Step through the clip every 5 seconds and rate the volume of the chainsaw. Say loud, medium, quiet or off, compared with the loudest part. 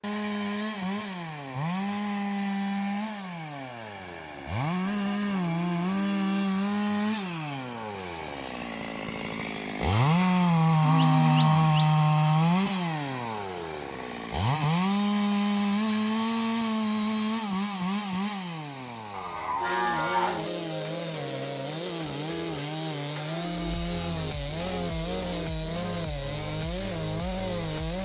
medium, medium, loud, medium, medium, medium.